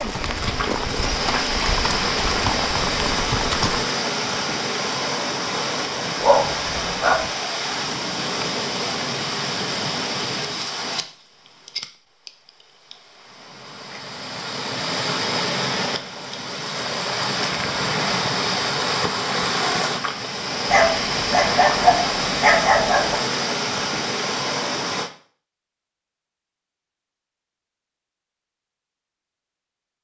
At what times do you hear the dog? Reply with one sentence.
You can hear the dog from 6.2 to 7.2 s and from 20.6 to 23.2 s.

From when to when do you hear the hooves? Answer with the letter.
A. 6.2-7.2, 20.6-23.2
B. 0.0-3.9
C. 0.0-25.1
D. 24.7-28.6
B.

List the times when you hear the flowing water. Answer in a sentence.
You can hear the flowing water from 0.0 to 25.1 s.